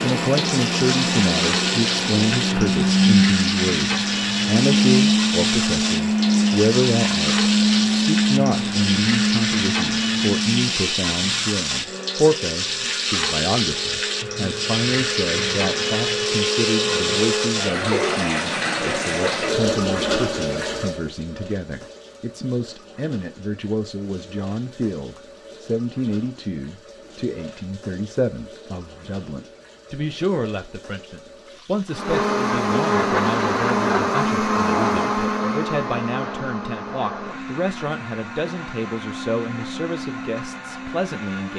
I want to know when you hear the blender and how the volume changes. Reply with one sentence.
You can hear the blender from 0.0 to 17.6 s, getting quieter then louder; and from 31.9 to 41.5 s, getting quieter.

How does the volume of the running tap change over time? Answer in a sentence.
The volume of the running tap goes down.